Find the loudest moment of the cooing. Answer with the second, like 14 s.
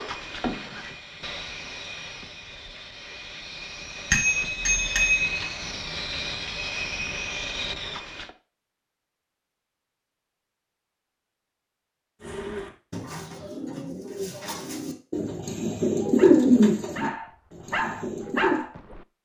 16 s.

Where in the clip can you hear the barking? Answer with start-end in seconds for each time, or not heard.
16.1-19.1.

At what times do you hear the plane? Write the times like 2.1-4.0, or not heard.
0.0-8.3.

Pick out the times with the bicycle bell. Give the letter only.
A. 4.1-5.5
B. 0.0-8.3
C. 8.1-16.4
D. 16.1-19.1
A.